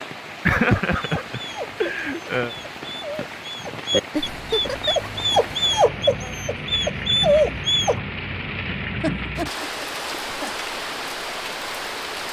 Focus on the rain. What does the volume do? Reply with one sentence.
The loudness of the rain goes up.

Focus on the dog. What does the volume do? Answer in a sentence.
The volume of the dog goes up.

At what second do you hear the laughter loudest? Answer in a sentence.
The volume of the laughter peaks at 1 second.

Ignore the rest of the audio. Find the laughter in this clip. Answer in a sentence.
The laughter can be heard from 0.5 to 2.5 s, from 4.2 to 5.1 s and from 9.0 to 10.5 s.